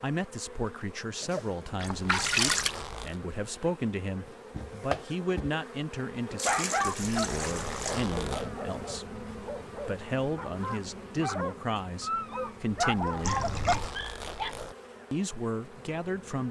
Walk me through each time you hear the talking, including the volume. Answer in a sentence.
The talking can be heard from 0.0 to 13.5 s, at a steady volume; and briefly from 15.1 to 16.4 s.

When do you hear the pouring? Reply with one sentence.
You can hear the pouring from 1.2 to 2.8 s, from 6.3 to 8.0 s and from 13.2 to 13.9 s.